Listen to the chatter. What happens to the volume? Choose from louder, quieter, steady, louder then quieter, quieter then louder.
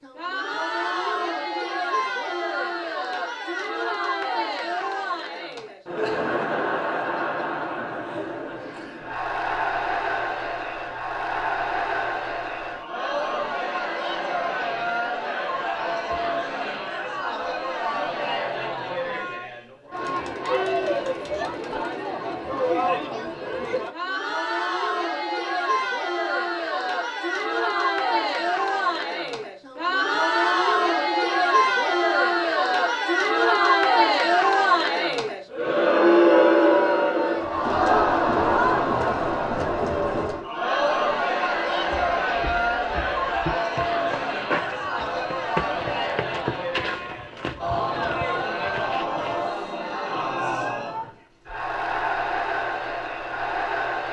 louder then quieter.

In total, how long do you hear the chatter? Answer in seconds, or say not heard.
54 s.